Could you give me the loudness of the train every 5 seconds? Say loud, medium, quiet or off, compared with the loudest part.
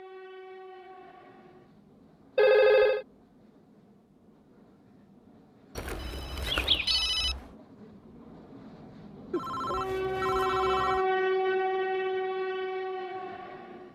quiet, quiet, loud.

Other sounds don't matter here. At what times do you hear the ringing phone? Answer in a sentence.
The ringing phone can be heard from 2.4 to 3.0 s, from 5.8 to 7.4 s and from 9.3 to 11.1 s.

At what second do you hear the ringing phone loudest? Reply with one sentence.
The volume of the ringing phone peaks at 3 seconds.